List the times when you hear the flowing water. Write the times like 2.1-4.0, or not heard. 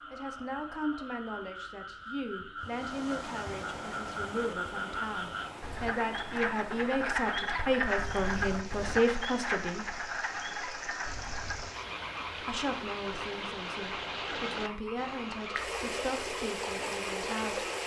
2.5-17.8.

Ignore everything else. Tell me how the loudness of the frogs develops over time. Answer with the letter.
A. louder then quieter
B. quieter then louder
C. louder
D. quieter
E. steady
A.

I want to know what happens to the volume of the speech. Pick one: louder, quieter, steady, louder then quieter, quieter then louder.
louder then quieter.